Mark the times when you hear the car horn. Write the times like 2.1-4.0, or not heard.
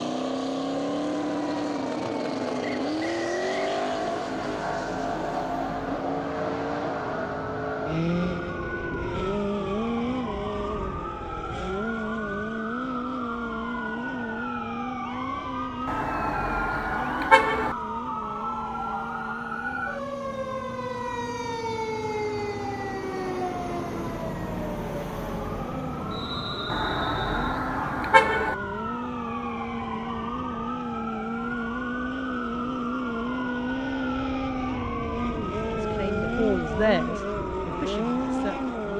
15.8-17.8, 26.7-28.6.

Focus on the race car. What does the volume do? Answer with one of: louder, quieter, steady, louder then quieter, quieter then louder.
quieter then louder.